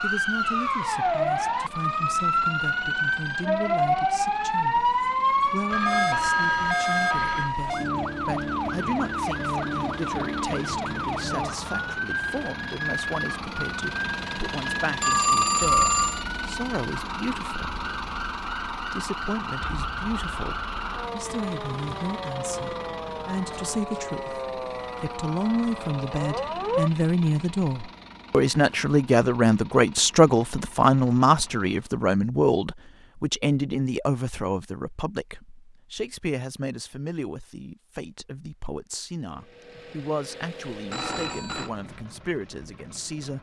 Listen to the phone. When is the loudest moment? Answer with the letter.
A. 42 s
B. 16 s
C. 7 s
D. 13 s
B.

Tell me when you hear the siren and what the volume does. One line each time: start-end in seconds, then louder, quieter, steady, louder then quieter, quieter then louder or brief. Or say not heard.
0.0-26.9 quieter.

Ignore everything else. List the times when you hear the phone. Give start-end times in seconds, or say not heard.
5.7-7.5, 15.0-16.2, 40.9-41.7.